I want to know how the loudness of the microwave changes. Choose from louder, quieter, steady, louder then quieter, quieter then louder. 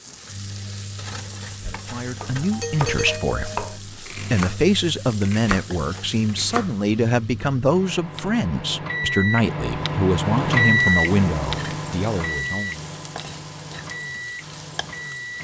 louder then quieter.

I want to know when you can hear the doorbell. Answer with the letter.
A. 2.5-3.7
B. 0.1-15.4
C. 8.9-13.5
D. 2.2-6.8
A.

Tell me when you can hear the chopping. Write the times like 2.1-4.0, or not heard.
2.2-6.8.